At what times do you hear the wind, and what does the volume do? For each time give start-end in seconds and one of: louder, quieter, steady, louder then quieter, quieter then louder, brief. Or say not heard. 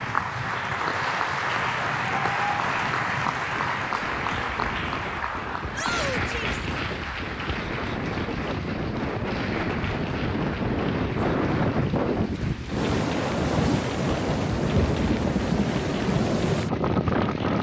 0.0-17.5 louder.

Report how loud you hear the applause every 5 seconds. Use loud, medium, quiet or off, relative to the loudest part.
loud, medium, quiet, quiet.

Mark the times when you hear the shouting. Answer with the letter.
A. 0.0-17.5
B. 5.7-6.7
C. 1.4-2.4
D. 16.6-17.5
B.